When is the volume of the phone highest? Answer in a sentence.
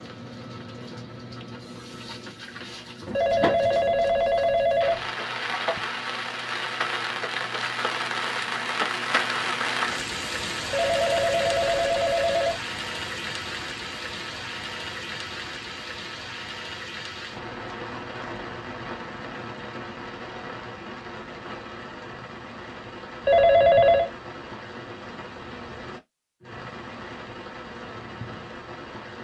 The loudest moment of the phone is at 24 seconds.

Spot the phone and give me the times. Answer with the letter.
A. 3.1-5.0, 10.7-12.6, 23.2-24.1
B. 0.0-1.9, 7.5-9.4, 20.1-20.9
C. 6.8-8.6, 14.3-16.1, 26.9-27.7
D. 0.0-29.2
A.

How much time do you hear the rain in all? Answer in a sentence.
You can hear the rain for 29 seconds altogether.